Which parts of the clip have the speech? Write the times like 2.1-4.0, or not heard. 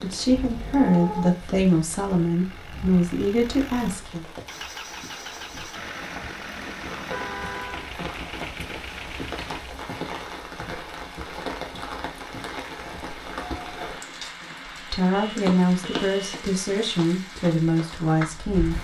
0.0-4.2, 14.9-18.7.